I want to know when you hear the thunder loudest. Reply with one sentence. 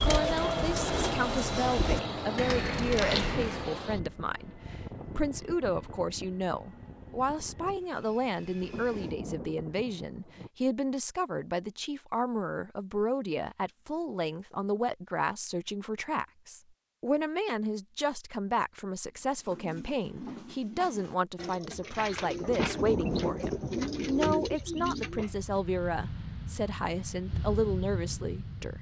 The loudest moment of the thunder is at 23 seconds.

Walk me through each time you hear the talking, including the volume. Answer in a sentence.
The talking can be heard from 0.0 to 28.7 s, at a steady volume.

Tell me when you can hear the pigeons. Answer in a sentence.
The pigeons can be heard from 0.0 to 3.8 s and from 19.4 to 25.3 s.